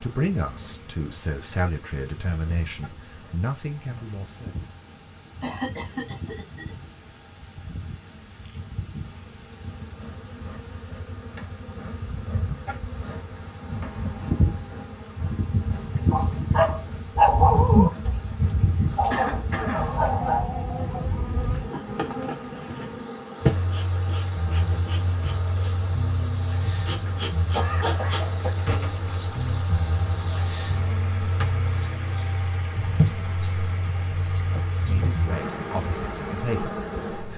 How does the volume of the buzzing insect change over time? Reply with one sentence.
The loudness of the buzzing insect goes up.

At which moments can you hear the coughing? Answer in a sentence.
You can hear the coughing from 5.4 to 6.8 s, from 19.1 to 19.9 s and from 27.1 to 28.5 s.